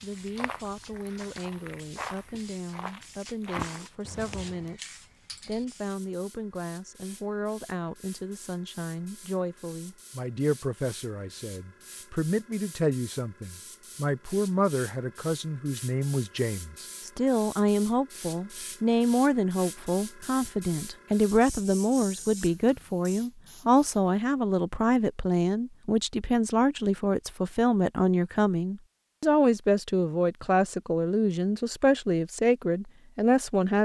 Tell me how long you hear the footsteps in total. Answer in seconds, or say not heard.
5 s.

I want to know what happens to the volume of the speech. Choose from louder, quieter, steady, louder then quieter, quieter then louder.
louder.